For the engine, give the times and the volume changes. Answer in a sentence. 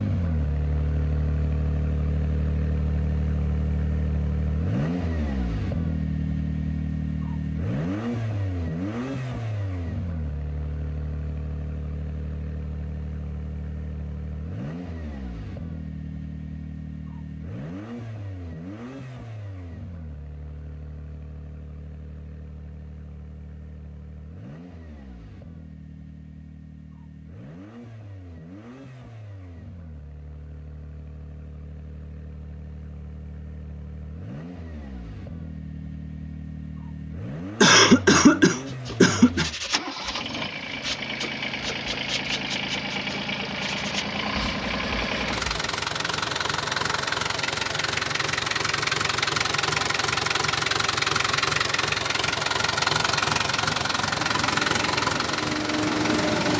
The engine can be heard from 0.0 to 56.5 s, getting quieter then louder.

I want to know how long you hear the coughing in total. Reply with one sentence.
You can hear the coughing for 2 seconds altogether.